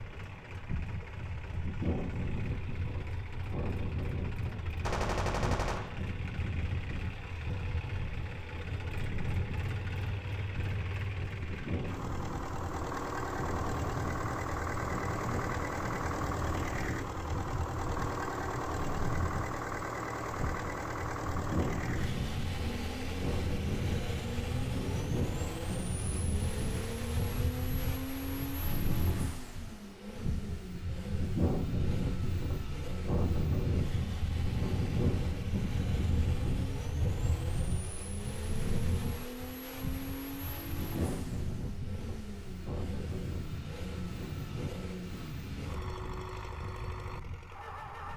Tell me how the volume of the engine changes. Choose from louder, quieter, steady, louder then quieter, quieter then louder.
louder then quieter.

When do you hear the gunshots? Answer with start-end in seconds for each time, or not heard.
4.8-6.0.